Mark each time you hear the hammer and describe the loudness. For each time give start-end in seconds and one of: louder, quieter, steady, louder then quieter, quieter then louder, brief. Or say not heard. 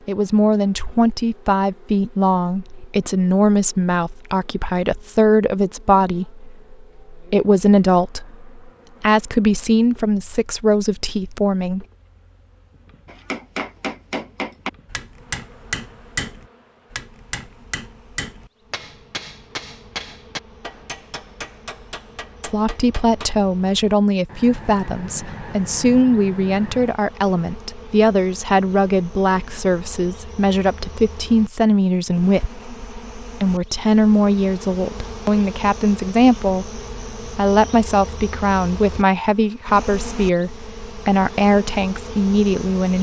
13.1-23.3 quieter.